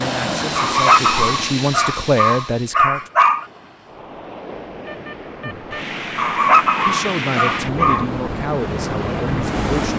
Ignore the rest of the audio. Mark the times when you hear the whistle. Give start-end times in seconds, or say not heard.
not heard.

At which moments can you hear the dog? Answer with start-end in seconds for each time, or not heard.
0.6-3.5, 6.2-8.1.